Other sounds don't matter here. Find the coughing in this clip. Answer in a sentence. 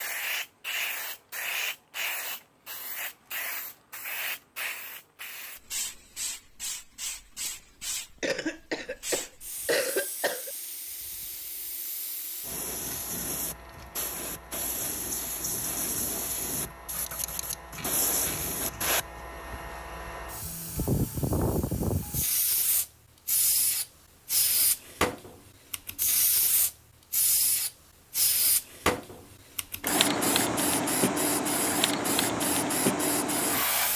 You can hear the coughing from 8.2 to 10.5 s.